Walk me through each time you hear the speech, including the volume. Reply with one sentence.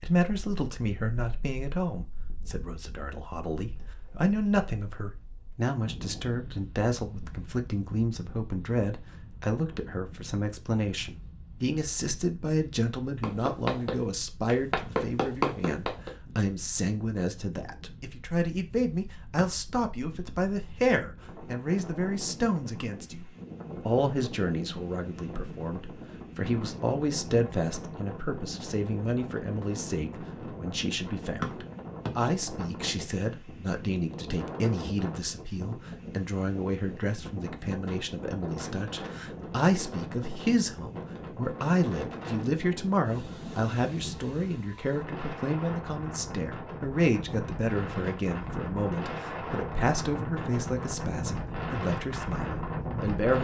You can hear the speech from 0.0 to 53.3 s, at a steady volume.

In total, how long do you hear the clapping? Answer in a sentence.
You can hear the clapping for 3 seconds altogether.